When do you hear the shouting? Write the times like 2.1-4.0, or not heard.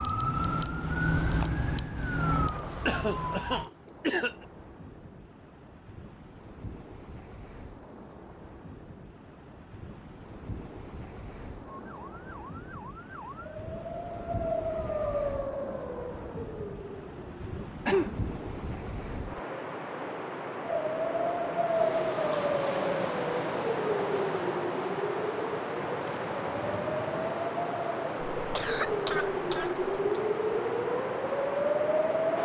not heard.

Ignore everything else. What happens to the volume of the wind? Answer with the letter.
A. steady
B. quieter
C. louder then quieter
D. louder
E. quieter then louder
D.